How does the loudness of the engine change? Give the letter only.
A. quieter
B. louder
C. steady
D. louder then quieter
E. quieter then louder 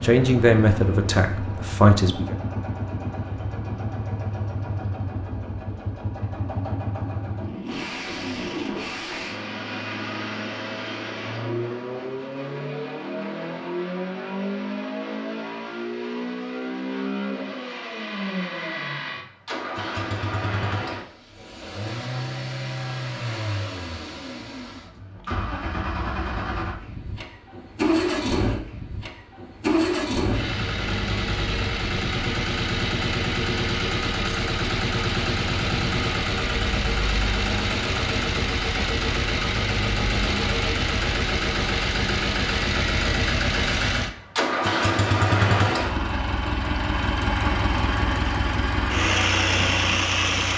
B.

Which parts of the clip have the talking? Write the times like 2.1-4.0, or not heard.
0.0-2.4.